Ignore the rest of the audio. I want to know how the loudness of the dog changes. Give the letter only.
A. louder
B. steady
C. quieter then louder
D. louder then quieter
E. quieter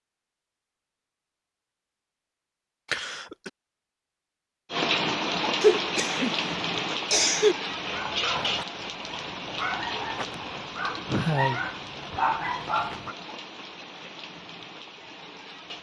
A.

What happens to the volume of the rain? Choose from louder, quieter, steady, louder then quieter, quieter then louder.
quieter.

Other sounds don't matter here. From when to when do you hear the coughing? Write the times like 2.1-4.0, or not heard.
2.9-3.5, 5.6-7.5, 11.1-12.2.